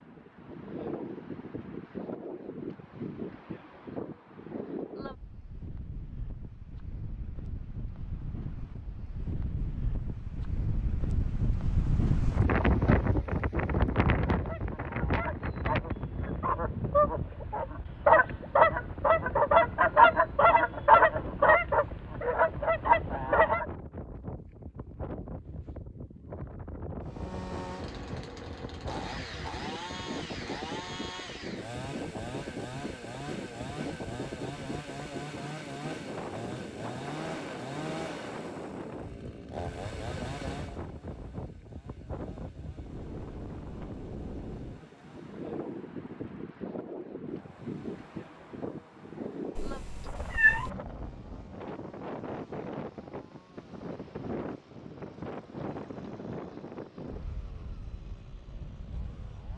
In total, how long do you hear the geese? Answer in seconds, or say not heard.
9 s.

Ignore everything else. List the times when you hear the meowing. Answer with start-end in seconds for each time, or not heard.
49.5-50.7.